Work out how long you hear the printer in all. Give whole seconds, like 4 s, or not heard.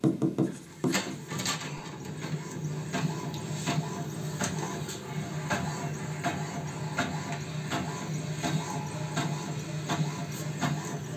11 s.